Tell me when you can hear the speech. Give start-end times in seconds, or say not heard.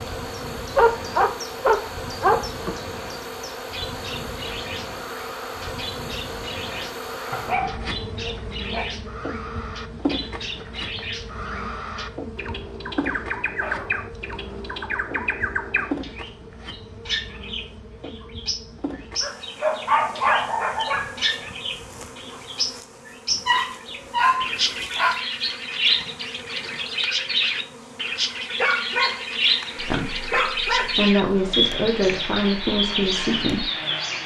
29.8-33.6.